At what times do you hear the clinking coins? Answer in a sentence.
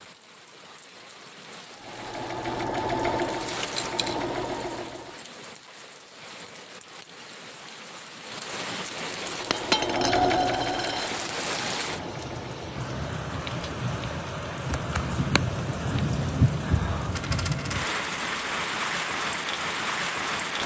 The clinking coins can be heard from 3.7 to 4.2 s, from 9.5 to 11.1 s and from 17.1 to 17.9 s.